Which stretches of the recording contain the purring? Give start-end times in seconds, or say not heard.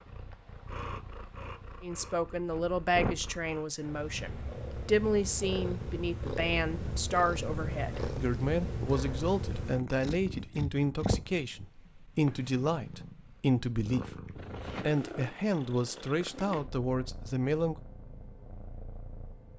0.0-19.5.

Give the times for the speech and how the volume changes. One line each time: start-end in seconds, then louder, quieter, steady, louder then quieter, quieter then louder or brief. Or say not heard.
1.8-14.2 steady
14.8-17.8 brief.